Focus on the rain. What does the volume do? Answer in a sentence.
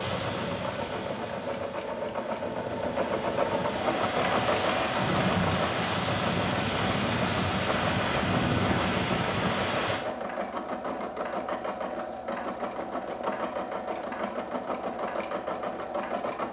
The volume of the rain goes up.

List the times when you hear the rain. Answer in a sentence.
The rain can be heard from 0.0 to 10.1 s.